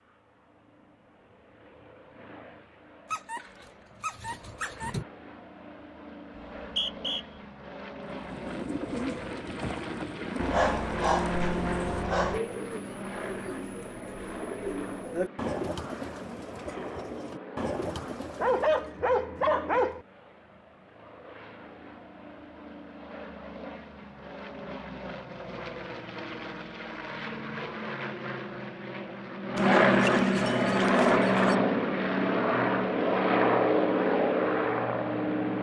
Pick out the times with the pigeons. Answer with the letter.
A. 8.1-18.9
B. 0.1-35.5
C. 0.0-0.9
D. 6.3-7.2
A.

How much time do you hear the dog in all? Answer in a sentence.
The dog can be heard for 8 seconds in total.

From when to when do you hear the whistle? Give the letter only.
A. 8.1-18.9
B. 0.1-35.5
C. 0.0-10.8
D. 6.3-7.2
D.